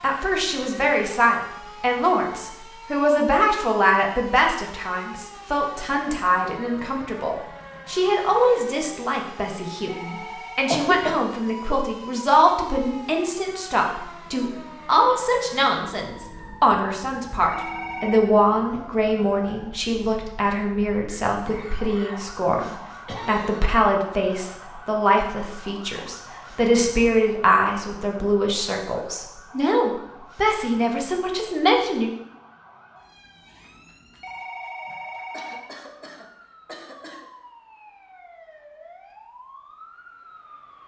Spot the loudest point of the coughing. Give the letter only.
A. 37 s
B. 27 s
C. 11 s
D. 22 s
C.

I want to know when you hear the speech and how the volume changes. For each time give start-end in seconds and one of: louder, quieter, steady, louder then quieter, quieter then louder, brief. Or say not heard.
0.0-32.1 steady.